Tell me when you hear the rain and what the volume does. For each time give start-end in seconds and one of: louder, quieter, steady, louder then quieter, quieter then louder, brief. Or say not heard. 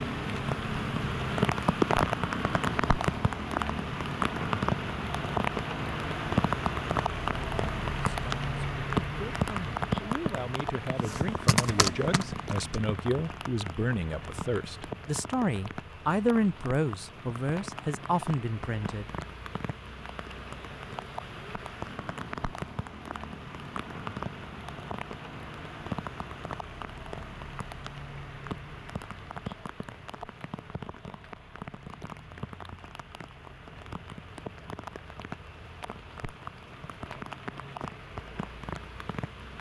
0.0-39.5 quieter.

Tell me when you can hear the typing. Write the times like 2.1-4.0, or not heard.
11.1-12.8.